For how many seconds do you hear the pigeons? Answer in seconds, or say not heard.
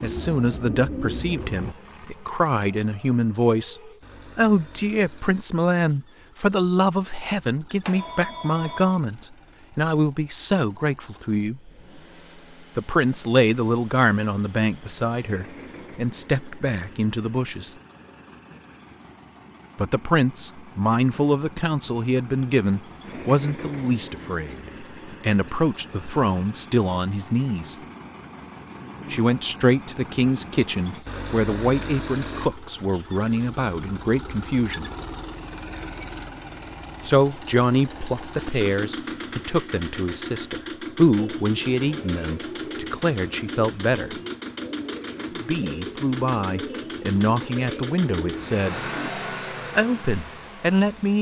10 s.